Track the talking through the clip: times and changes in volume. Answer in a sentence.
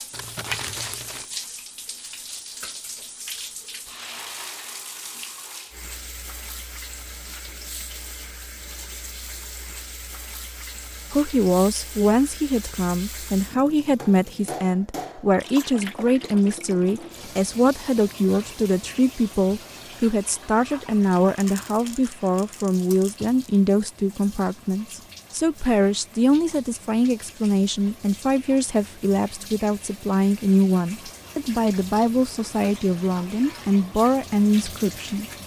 The talking can be heard from 11.1 to 35.2 s, at a steady volume.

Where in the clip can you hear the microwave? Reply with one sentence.
The microwave can't be heard in this clip.